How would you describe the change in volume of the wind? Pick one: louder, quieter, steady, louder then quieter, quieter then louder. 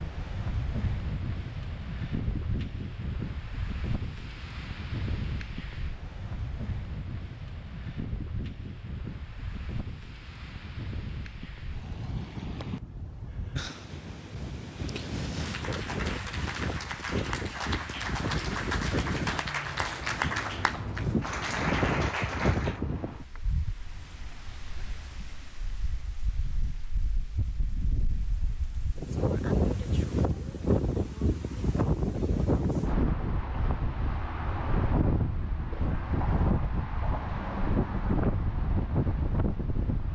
louder.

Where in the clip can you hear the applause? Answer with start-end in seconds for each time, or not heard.
15.3-22.8.